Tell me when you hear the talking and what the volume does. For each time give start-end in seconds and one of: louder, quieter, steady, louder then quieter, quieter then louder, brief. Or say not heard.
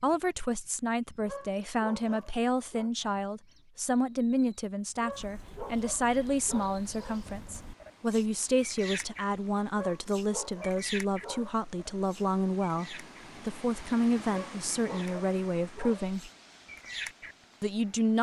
0.0-16.3 steady
17.6-18.1 brief.